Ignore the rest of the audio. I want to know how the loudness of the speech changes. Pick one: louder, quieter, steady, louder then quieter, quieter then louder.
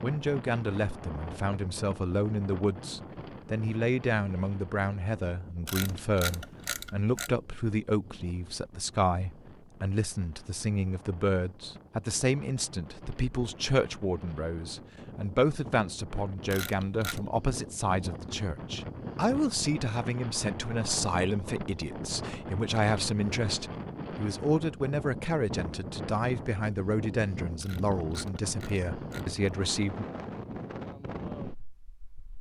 steady.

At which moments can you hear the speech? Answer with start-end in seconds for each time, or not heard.
0.0-30.1.